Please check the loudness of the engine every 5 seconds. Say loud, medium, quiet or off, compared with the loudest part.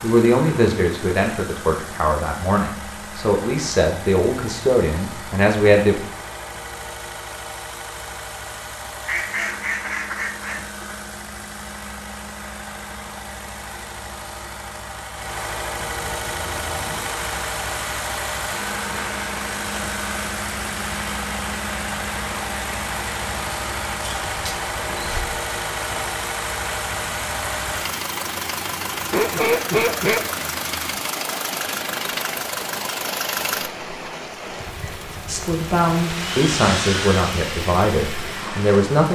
medium, medium, medium, loud, loud, loud, loud, loud.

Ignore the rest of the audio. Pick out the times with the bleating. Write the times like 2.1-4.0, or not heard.
not heard.